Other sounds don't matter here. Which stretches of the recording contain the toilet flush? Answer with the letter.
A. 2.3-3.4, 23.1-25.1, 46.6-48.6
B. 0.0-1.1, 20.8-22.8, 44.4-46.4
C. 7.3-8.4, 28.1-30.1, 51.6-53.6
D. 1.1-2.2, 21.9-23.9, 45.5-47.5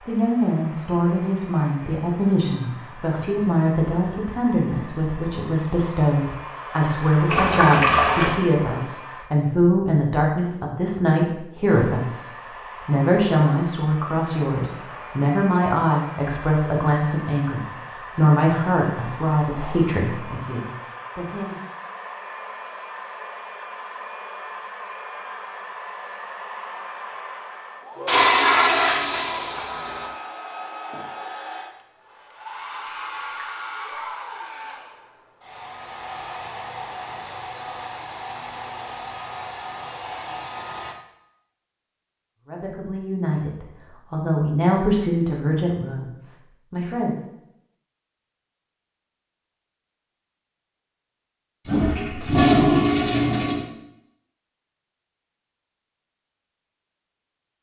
C.